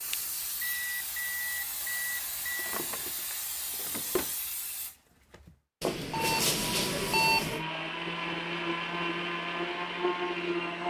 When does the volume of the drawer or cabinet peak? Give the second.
4 s.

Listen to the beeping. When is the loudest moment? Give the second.
7 s.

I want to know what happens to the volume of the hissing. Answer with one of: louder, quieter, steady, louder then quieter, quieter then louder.
steady.